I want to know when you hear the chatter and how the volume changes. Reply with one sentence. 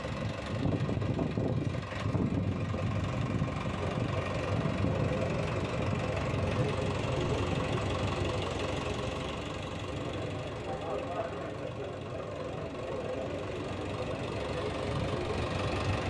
You can hear the chatter from 3.7 to 15.8 s, at a steady volume.